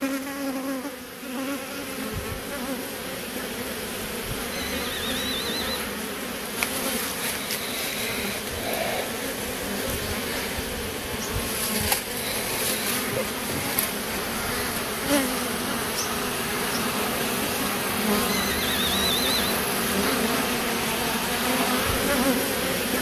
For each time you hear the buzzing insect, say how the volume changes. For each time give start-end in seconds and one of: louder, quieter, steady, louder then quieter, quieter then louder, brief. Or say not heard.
0.0-22.9 louder.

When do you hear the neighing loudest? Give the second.
19 s.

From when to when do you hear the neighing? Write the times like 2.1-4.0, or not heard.
4.5-5.8, 18.2-19.6.